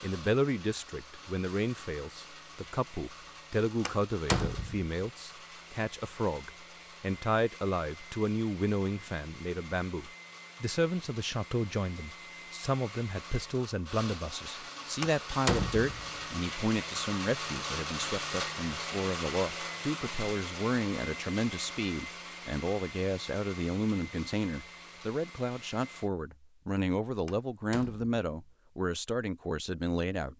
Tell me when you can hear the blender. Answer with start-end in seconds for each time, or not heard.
0.0-26.1.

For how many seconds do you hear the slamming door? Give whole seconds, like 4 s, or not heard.
3 s.